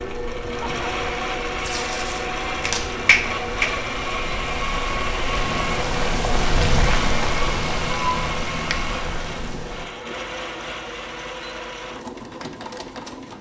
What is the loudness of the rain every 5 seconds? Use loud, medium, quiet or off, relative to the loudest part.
medium, loud, off.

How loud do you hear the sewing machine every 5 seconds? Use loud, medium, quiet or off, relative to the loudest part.
loud, loud, medium.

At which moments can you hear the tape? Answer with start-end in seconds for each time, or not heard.
1.6-2.9.